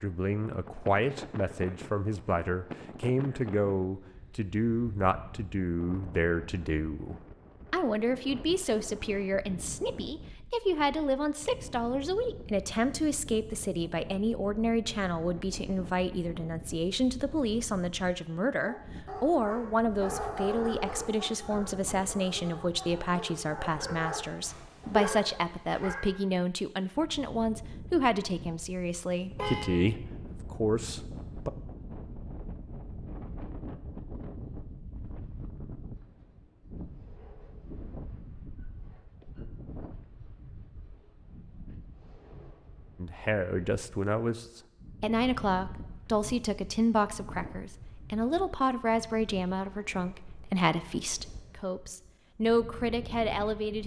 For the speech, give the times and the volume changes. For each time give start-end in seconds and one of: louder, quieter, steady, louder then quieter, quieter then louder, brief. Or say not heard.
0.0-31.5 steady
43.0-53.8 steady.